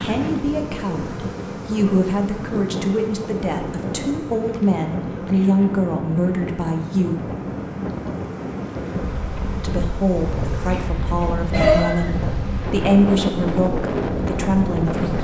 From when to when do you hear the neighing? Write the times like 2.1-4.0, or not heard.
11.5-12.3.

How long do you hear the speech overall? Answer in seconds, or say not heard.
13 s.